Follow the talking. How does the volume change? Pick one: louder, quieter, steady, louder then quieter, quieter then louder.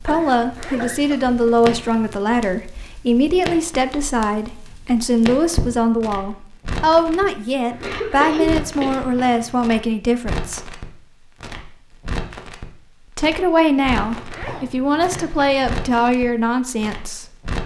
steady.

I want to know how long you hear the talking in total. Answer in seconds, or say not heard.
15 s.